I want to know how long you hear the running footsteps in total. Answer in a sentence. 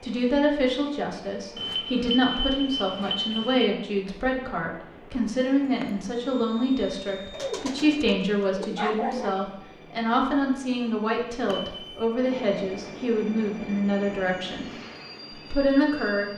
The running footsteps can't be heard in this clip.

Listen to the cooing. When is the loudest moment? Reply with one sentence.
The loudest moment of the cooing is at 9 seconds.